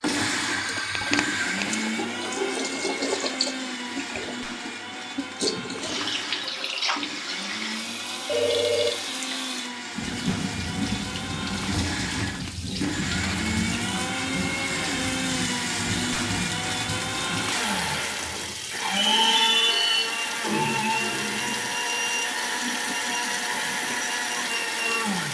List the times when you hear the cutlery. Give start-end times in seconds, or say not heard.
not heard.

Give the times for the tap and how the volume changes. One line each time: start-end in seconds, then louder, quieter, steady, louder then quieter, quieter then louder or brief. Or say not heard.
0.0-25.2 steady.